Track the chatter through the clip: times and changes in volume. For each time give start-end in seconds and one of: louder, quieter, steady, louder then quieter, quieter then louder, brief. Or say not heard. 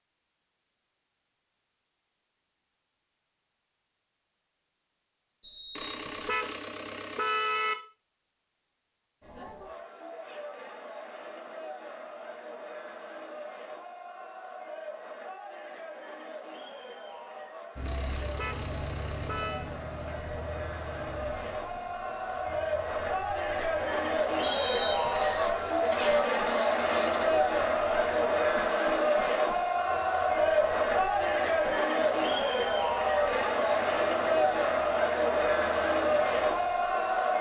9.2-37.3 louder.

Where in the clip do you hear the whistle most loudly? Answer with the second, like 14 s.
25 s.